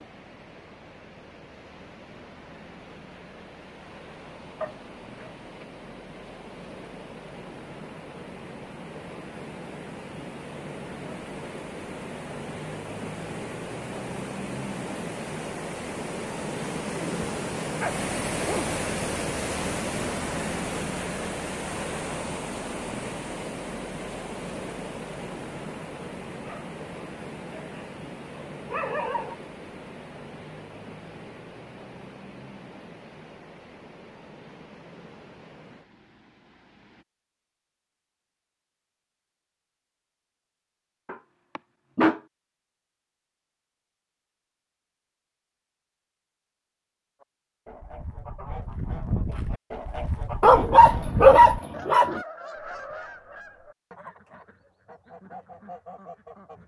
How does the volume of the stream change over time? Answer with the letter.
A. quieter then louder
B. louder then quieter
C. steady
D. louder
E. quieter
B.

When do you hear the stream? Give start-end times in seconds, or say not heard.
0.0-37.0.